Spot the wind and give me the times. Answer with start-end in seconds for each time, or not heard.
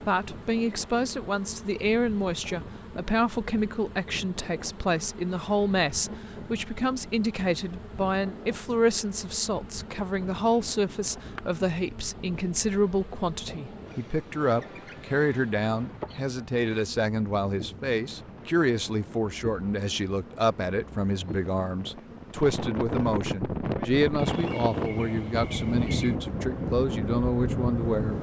0.0-28.1.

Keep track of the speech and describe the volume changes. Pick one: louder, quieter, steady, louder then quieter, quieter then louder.
steady.